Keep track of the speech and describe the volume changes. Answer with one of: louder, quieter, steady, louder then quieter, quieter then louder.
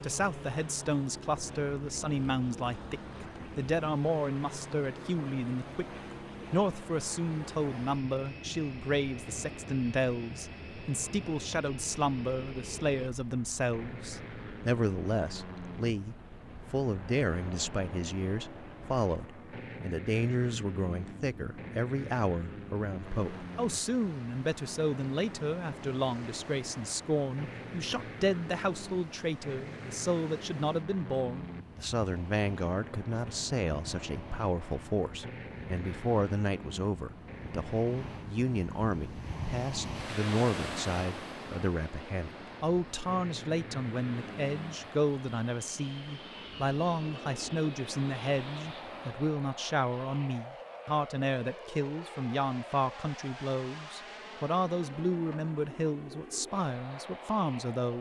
steady.